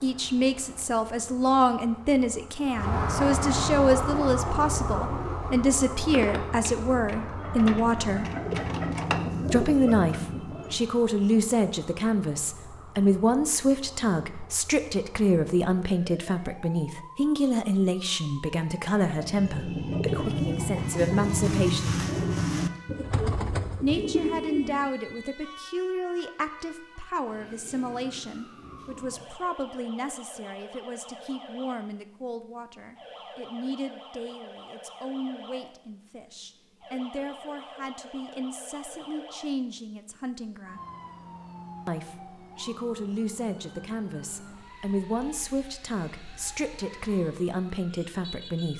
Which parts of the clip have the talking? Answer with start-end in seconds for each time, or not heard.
0.0-8.2, 9.5-22.0, 23.8-40.8, 41.9-48.7.